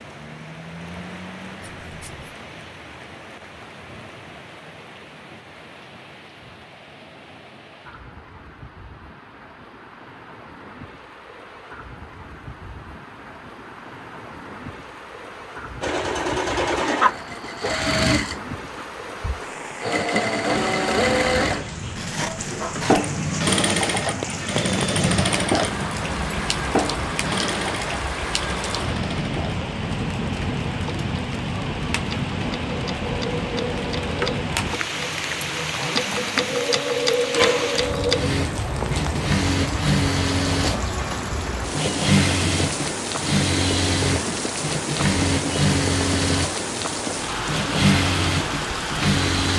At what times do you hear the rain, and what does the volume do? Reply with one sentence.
The rain can be heard from 0.0 to 49.5 s, getting louder.